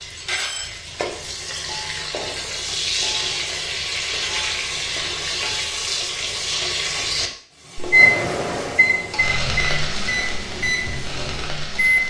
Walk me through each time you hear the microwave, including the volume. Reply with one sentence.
The microwave can be heard from 7.9 to 12.0 s, getting quieter.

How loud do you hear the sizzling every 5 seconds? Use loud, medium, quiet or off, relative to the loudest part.
loud, loud, medium.